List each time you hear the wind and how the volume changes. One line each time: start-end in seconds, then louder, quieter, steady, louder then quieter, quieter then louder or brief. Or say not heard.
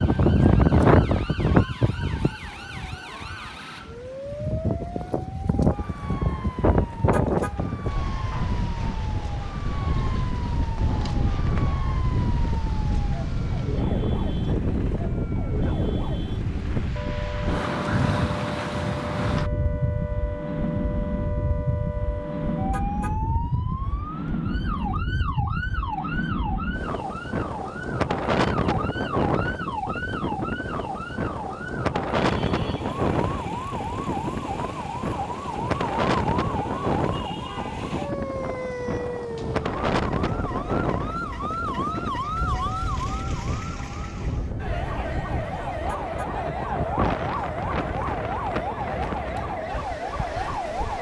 0.0-50.9 quieter.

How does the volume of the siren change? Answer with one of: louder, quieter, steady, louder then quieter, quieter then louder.
louder.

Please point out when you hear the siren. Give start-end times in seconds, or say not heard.
0.0-50.9.